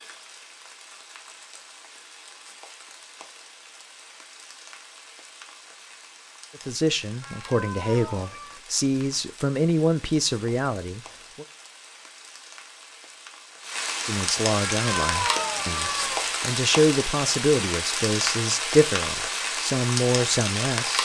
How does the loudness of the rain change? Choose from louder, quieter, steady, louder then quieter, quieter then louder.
louder.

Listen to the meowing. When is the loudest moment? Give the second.
15 s.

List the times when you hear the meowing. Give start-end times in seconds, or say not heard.
7.2-8.6, 14.6-16.2.